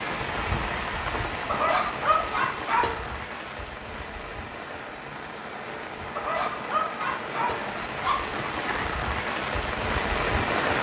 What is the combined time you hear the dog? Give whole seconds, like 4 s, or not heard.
4 s.